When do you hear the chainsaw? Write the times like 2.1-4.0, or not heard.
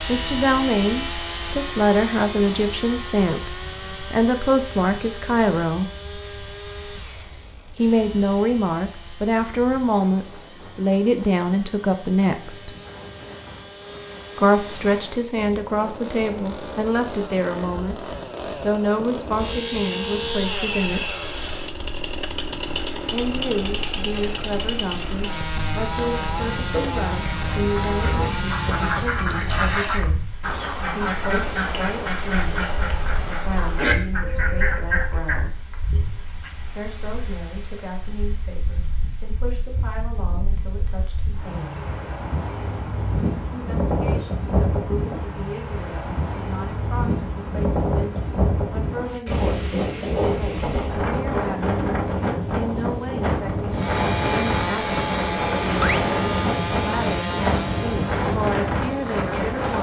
0.0-30.1, 53.7-59.7.